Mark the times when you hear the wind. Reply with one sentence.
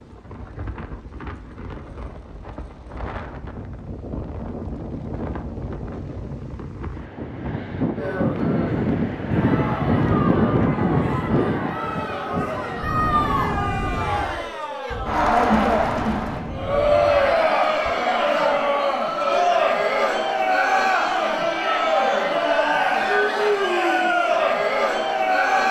You can hear the wind from 0.0 to 17.9 s.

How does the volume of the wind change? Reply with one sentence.
The loudness of the wind goes up, then down.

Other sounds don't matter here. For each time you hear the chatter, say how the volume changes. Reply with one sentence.
The chatter can be heard from 8.0 to 25.6 s, getting louder.